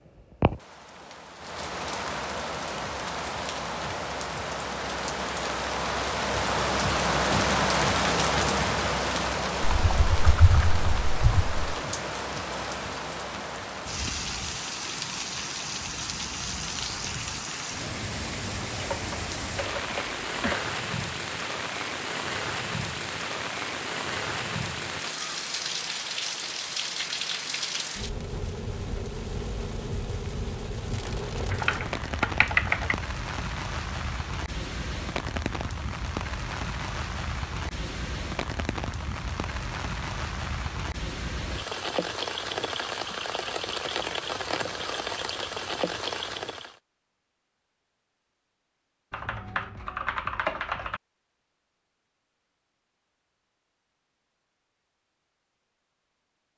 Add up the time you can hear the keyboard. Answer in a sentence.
The keyboard can be heard for 7 seconds in total.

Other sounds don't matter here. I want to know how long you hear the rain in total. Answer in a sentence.
The rain can be heard for 47 seconds in total.